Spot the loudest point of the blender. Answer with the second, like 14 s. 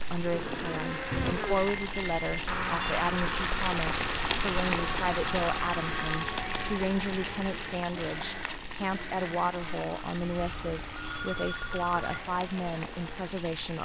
3 s.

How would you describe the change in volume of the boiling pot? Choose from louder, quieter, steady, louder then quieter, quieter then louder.
louder then quieter.